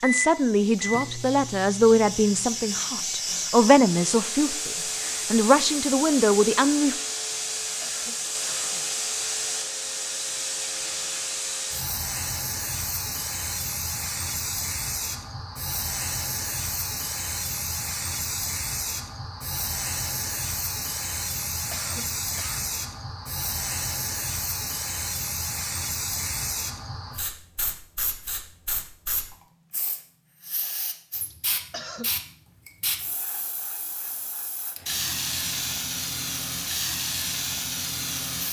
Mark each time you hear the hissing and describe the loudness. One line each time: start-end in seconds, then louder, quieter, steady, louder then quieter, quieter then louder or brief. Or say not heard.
0.0-38.4 steady.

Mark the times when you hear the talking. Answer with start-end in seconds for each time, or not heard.
0.0-7.0.